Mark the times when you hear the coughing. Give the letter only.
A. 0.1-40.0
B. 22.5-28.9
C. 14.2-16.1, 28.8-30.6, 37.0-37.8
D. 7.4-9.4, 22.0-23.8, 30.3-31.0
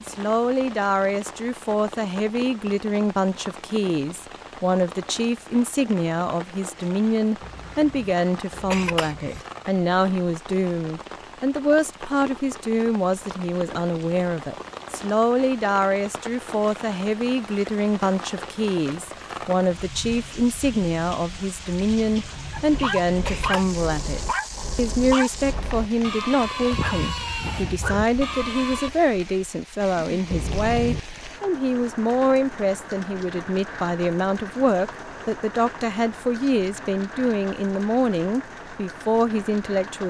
D.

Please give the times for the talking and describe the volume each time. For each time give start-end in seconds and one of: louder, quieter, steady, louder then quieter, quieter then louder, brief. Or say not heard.
0.1-40.0 steady.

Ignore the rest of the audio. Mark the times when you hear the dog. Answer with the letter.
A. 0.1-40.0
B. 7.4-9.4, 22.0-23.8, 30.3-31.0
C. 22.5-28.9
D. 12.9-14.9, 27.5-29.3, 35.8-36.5
C.